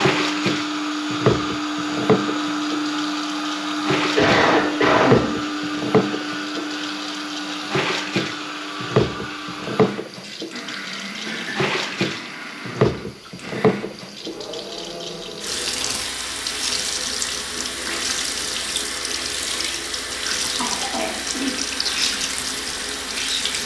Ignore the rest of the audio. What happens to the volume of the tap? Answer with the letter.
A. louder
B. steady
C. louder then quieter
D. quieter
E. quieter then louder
B.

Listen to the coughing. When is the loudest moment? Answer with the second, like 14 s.
5 s.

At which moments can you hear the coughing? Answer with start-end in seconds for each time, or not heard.
4.0-5.2, 11.2-11.7, 20.6-21.5.